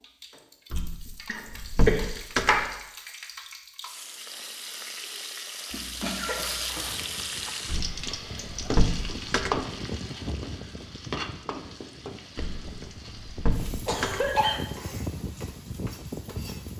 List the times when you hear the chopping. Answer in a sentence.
You can't hear the chopping here.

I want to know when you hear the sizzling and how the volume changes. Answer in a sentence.
The sizzling can be heard from 0.0 to 16.7 s, getting louder then quieter.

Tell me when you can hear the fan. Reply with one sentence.
The fan can be heard from 6.8 to 16.7 s.